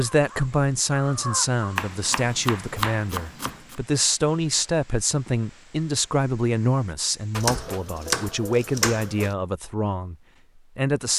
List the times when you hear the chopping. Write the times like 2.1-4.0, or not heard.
1.8-3.8, 7.3-9.3.